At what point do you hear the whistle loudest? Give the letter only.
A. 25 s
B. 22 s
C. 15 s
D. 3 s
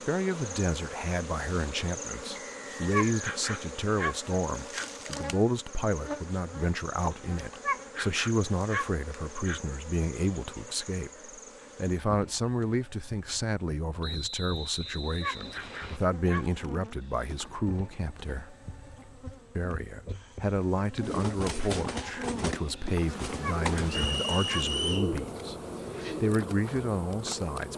A.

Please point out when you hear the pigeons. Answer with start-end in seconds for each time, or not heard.
20.9-26.4.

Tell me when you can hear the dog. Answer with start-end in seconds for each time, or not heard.
2.9-4.9, 7.6-9.6, 15.2-16.5, 23.4-24.7.